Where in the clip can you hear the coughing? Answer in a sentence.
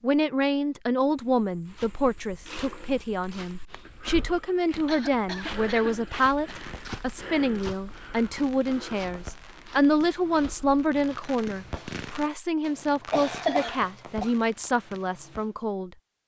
You can hear the coughing from 4.4 to 6.5 s and from 13.1 to 14.3 s.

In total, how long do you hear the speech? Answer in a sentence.
The speech can be heard for 16 seconds in total.